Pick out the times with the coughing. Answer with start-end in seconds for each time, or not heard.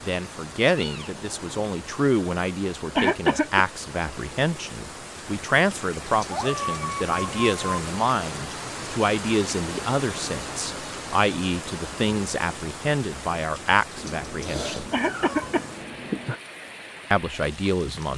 3.0-3.6, 14.9-15.7.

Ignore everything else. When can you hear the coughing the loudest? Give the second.
3 s.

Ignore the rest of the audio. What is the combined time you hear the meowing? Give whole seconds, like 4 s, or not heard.
5 s.